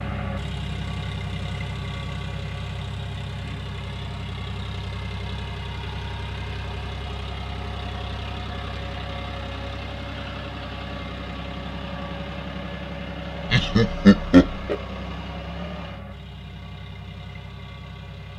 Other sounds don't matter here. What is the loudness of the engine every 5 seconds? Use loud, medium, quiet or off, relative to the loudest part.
loud, loud, loud, medium.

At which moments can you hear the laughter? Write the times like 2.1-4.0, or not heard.
13.5-14.8.